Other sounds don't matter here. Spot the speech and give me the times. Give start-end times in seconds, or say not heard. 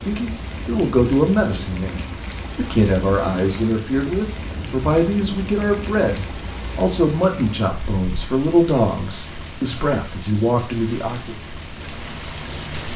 0.1-11.3.